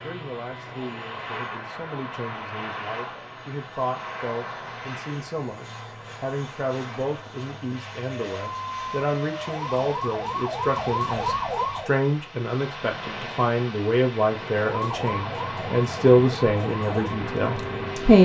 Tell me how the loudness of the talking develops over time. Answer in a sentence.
The volume of the talking goes up.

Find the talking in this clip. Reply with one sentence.
The talking can be heard from 0.0 to 18.2 s.